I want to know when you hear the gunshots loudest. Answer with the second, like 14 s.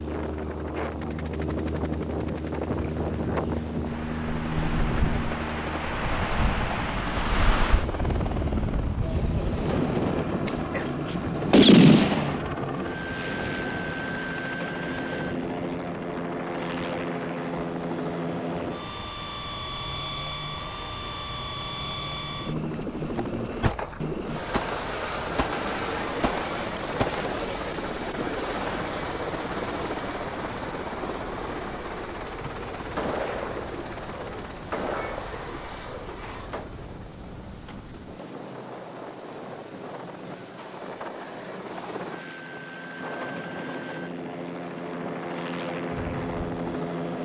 12 s.